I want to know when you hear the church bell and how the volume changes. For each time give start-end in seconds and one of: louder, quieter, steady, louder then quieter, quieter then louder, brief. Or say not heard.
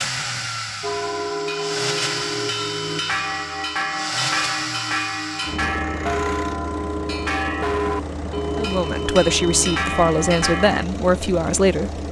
0.8-10.8 steady.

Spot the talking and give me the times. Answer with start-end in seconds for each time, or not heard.
8.6-12.0.